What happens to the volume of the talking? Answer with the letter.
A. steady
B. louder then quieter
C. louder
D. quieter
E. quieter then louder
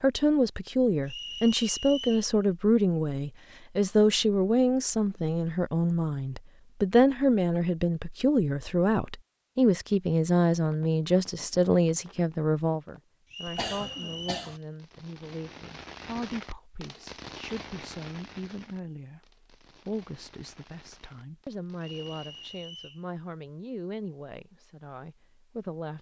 D.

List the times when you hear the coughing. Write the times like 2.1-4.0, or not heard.
13.6-14.6.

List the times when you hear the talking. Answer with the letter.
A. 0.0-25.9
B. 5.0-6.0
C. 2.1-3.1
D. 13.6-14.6
A.